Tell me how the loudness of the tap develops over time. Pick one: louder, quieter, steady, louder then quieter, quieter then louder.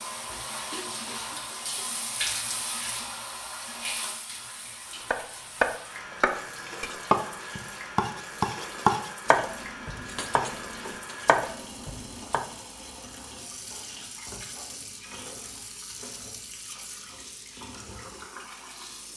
quieter.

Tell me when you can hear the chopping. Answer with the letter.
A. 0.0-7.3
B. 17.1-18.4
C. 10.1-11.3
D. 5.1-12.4
D.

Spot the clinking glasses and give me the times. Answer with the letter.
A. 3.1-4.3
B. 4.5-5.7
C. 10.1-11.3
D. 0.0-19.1
C.